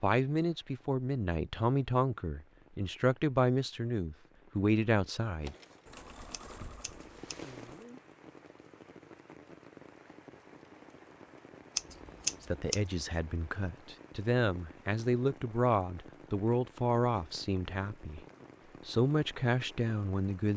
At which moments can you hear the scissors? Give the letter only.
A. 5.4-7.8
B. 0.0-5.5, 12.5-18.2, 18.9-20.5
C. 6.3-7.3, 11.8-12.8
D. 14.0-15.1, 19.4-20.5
C.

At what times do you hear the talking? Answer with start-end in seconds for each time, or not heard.
0.0-5.5, 12.5-18.2, 18.9-20.5.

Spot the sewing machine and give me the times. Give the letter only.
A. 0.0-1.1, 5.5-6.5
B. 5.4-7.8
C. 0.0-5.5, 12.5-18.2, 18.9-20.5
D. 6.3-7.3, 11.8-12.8
B.